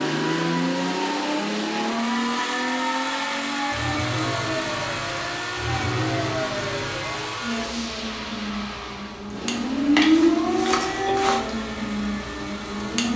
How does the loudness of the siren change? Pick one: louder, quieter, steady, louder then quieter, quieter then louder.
louder.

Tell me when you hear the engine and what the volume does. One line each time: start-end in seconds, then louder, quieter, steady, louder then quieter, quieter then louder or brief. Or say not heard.
0.0-13.1 quieter.